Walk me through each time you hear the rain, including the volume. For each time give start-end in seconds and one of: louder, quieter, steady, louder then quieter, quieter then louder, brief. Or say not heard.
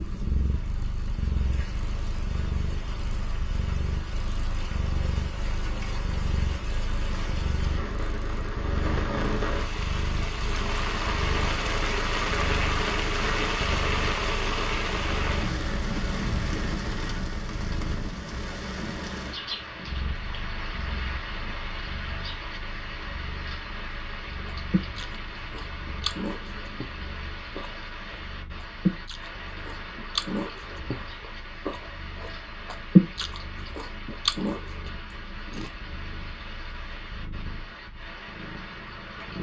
0.0-39.3 louder then quieter.